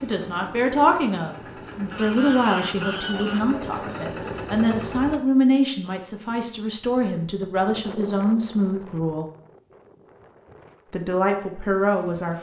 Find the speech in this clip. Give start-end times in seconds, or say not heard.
0.0-9.3, 10.9-12.3.